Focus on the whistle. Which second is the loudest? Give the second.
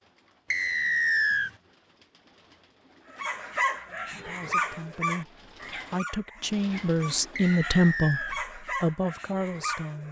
1 s.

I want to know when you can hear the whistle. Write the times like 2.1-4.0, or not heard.
0.5-1.5, 7.3-8.3.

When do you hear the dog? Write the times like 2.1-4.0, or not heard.
3.1-10.0.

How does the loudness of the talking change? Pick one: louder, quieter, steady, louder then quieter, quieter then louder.
louder then quieter.